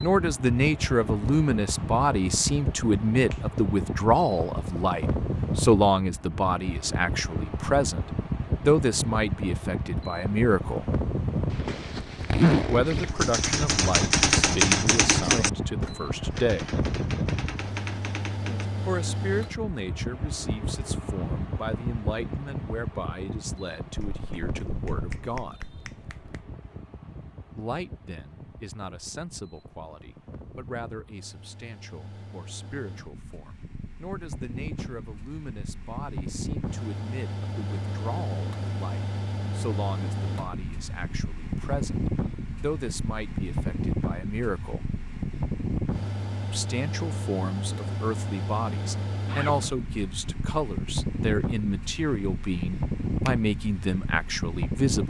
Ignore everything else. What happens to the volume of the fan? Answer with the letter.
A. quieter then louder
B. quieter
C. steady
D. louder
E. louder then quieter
A.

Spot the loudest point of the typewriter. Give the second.
15 s.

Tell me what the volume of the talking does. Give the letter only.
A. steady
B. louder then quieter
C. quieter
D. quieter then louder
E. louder
D.